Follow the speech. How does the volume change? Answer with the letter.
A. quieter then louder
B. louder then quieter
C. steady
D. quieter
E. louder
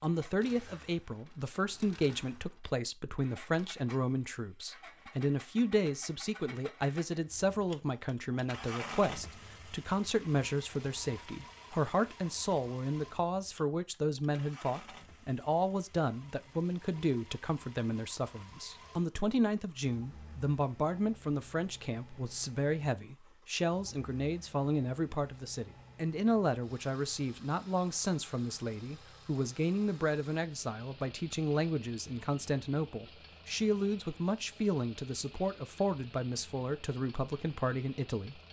C.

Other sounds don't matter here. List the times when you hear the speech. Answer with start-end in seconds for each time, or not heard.
0.0-38.4.